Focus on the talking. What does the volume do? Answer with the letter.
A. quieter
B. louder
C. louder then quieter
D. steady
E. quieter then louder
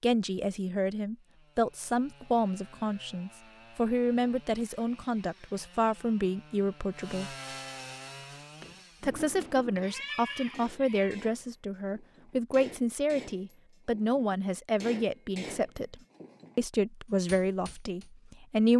D.